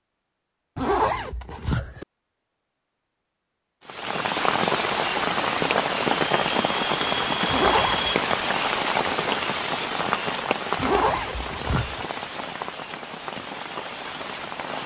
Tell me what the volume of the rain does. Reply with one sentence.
The loudness of the rain goes down.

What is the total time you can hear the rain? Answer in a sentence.
You can hear the rain for 11 seconds altogether.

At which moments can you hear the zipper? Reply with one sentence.
The zipper can be heard from 0.8 to 2.0 s, from 7.5 to 8.2 s and from 10.8 to 12.1 s.